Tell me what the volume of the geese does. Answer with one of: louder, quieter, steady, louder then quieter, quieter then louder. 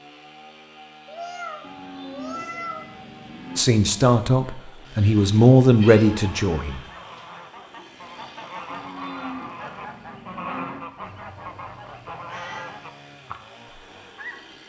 louder then quieter.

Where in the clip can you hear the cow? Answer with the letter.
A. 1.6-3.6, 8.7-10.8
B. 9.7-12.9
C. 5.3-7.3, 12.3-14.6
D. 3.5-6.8
A.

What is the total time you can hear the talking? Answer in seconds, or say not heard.
3 s.